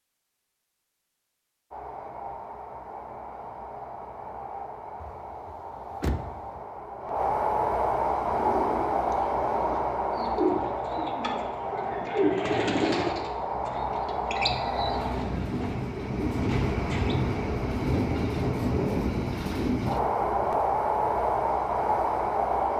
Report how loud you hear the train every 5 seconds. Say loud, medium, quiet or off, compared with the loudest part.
quiet, loud, medium, loud, loud.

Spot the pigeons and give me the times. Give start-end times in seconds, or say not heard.
8.2-17.1.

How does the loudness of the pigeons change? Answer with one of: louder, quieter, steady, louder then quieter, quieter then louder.
louder then quieter.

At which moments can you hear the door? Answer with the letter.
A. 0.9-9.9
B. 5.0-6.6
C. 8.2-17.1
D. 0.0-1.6
B.